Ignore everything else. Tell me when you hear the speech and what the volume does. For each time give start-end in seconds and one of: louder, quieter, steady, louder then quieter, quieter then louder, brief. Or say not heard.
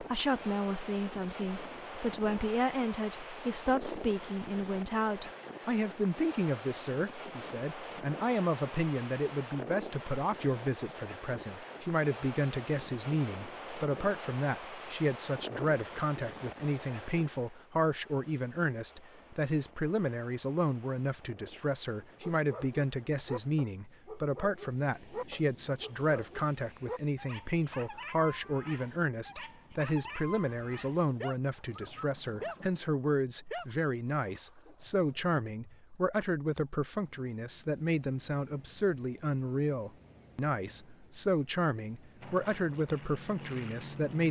0.0-44.2 steady.